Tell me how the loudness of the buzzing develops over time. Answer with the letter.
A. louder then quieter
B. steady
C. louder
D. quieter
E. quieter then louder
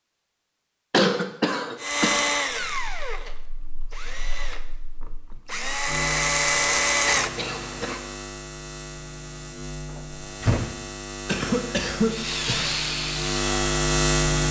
C.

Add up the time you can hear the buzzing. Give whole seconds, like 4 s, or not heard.
12 s.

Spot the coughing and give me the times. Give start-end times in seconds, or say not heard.
0.9-2.3, 7.0-8.0, 11.2-12.8.